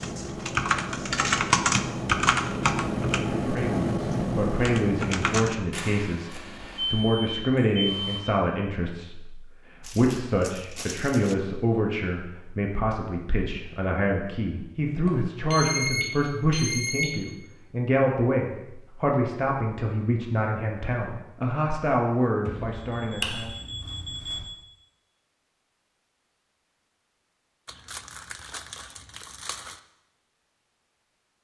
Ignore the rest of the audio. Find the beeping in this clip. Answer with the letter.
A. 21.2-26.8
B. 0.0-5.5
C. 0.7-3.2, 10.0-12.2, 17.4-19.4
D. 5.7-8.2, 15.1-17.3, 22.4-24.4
D.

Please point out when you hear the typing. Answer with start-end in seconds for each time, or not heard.
0.0-5.5.